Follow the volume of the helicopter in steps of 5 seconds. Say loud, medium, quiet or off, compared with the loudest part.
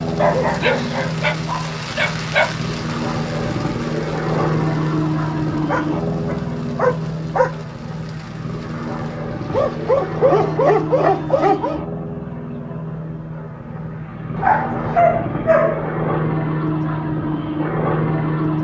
loud, loud, medium, loud.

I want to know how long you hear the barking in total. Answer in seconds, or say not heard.
8 s.